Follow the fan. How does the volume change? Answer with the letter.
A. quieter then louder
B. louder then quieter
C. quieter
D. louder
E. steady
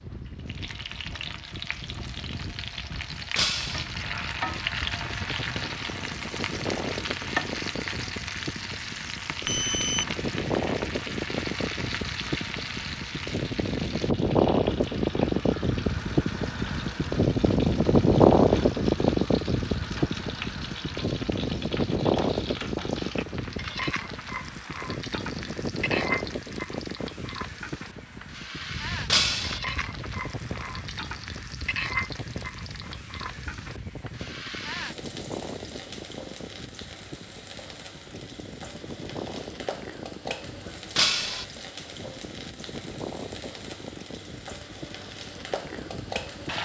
B.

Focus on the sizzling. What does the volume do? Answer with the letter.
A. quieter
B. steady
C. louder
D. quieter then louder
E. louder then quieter
A.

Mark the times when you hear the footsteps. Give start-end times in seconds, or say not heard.
not heard.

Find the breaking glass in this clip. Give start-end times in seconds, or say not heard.
3.4-3.9, 29.1-29.6, 41.0-41.5.